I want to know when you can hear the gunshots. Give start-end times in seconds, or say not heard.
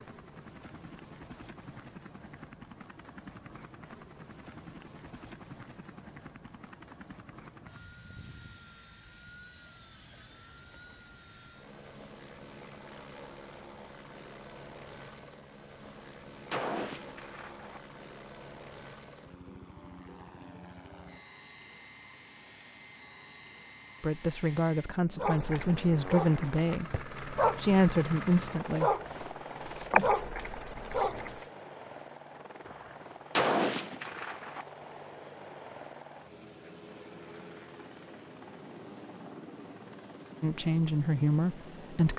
15.8-17.8, 32.6-34.6.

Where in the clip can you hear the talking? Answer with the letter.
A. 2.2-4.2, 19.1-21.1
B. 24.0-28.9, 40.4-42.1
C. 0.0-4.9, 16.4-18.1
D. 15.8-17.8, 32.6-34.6
B.